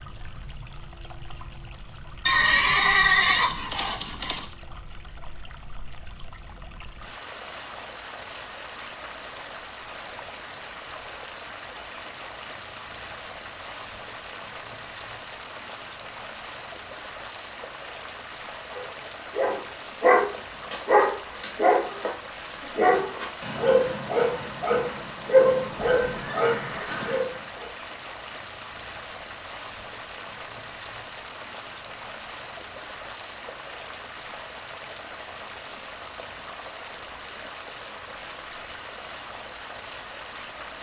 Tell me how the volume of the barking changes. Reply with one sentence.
The loudness of the barking goes down.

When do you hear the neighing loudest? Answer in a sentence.
The loudest moment of the neighing is at 3 seconds.